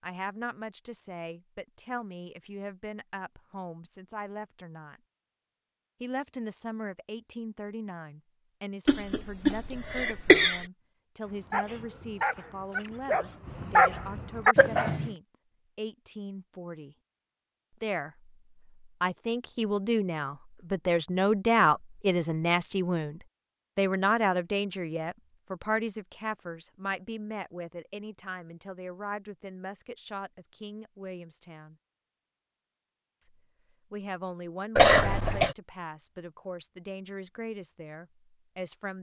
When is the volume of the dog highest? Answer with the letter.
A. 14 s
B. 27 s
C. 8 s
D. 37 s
A.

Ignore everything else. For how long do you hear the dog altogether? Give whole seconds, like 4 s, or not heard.
3 s.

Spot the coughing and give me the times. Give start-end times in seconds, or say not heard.
8.8-10.7, 14.6-15.1, 34.8-35.5.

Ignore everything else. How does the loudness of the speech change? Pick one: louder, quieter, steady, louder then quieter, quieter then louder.
louder then quieter.